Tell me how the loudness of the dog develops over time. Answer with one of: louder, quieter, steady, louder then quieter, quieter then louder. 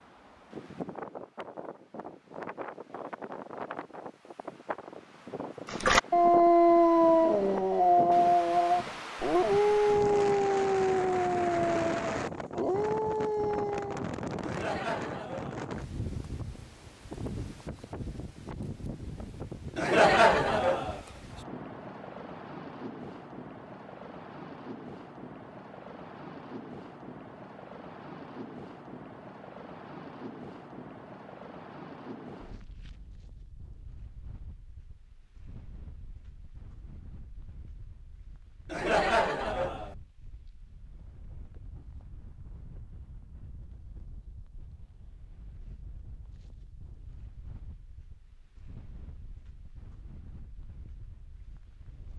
quieter.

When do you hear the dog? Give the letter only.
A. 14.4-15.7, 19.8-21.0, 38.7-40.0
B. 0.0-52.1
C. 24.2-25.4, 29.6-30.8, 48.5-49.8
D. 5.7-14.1
D.